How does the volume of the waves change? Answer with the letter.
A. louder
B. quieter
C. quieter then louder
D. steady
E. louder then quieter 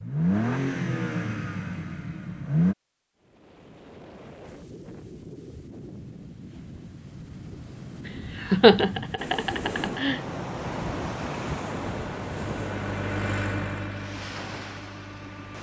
E.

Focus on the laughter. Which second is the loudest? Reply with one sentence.
The volume of the laughter peaks at 9 seconds.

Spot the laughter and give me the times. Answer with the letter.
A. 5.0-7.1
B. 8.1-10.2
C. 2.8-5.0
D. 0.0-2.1
B.